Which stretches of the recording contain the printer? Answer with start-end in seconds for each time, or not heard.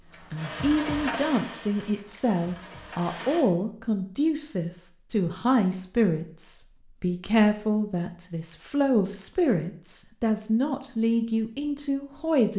0.0-3.5.